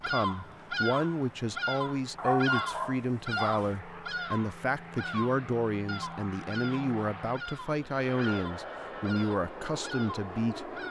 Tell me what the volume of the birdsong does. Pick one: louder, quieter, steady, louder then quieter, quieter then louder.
quieter.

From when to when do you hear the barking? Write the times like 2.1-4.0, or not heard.
2.1-3.8.